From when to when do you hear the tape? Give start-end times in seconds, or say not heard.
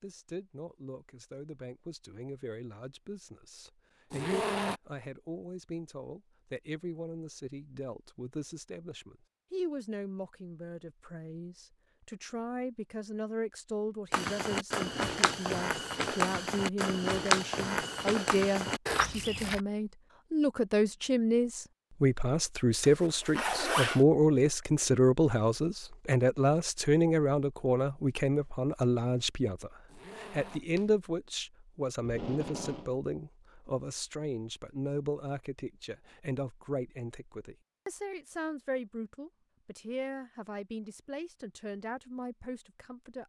32.0-32.9.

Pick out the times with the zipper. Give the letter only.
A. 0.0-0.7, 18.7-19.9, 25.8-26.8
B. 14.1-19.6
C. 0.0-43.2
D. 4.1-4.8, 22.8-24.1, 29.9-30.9
D.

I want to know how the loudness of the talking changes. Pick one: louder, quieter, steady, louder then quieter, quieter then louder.
louder then quieter.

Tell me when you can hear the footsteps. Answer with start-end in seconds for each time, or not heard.
14.1-19.6.